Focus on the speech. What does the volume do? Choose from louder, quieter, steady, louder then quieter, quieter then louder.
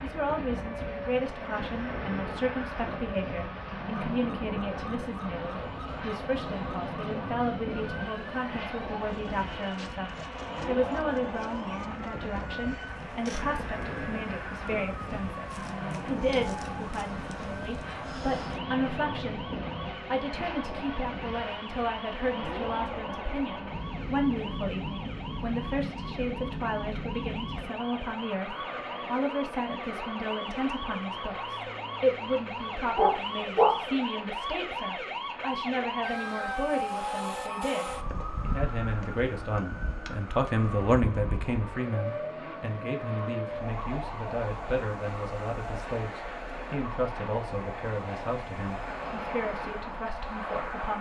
steady.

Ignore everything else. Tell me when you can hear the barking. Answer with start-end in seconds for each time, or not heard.
33.0-33.8.